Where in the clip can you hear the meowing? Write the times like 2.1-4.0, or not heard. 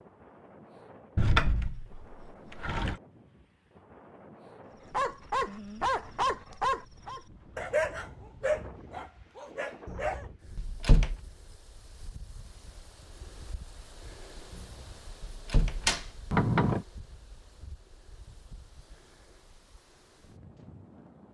not heard.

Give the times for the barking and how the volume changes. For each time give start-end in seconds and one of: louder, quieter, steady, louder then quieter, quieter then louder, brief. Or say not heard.
4.9-10.2 quieter.